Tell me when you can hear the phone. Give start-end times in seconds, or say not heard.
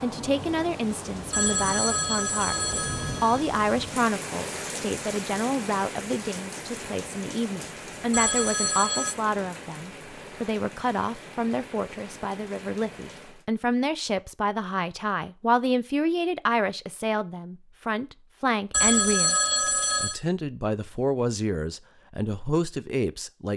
1.3-3.5, 8.1-9.2, 18.7-20.2.